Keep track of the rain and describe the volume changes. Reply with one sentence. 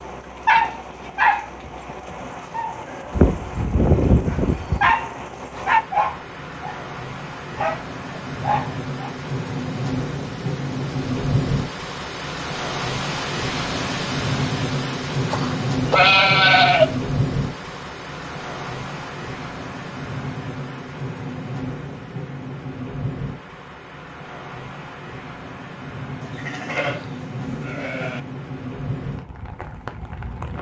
The volume of the rain goes up, then down.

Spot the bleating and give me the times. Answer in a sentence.
The bleating can be heard from 3.1 to 5.0 s, from 15.2 to 16.9 s and from 26.2 to 28.2 s.